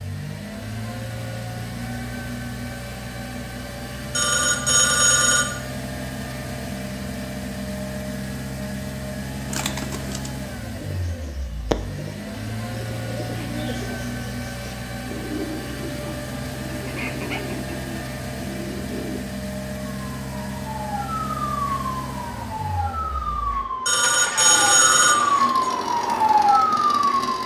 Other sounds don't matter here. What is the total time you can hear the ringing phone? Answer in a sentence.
You can hear the ringing phone for 3 seconds altogether.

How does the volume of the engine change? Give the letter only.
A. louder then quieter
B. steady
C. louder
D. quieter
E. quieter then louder
B.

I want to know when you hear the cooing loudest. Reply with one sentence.
The loudest moment of the cooing is at 12 seconds.